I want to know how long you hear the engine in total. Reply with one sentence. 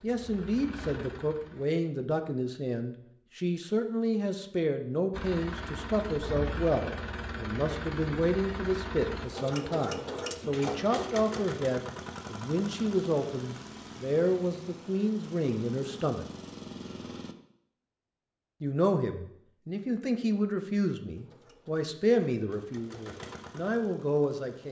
The engine can be heard for 17 seconds in total.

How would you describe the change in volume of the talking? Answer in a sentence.
The loudness of the talking stays about the same.